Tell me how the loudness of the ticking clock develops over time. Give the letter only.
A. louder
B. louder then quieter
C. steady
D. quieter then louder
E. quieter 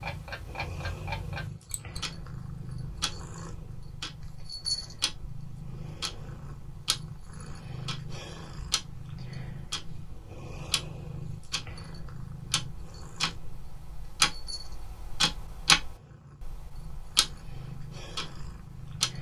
A.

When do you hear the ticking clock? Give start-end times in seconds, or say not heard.
0.0-19.1.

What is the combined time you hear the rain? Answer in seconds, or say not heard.
not heard.